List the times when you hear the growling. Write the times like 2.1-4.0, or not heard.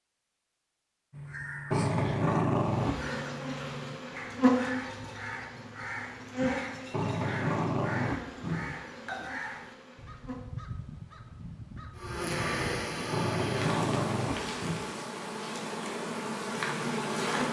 1.7-3.1, 6.9-8.8, 13.1-14.9.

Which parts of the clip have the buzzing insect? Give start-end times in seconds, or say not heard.
2.5-10.4, 11.9-17.4.